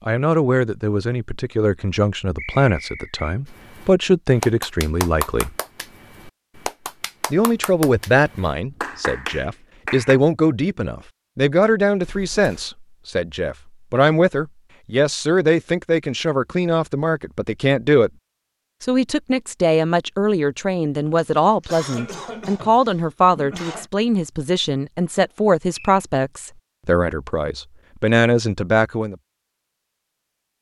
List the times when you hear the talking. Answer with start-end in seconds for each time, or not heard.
0.1-5.5, 7.3-18.1, 18.8-29.1.